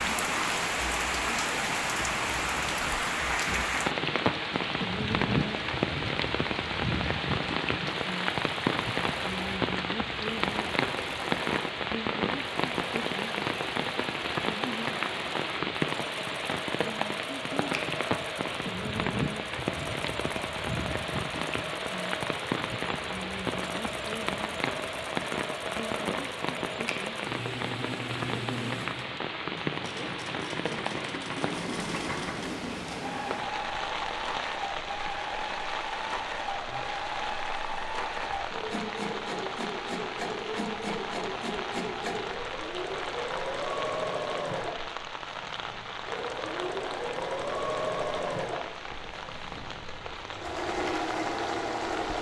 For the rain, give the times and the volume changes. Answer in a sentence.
The rain can be heard from 0.0 to 52.1 s, getting quieter.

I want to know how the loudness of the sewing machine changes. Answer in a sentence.
The loudness of the sewing machine goes up.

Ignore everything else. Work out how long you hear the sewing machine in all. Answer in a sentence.
You can hear the sewing machine for 52 seconds altogether.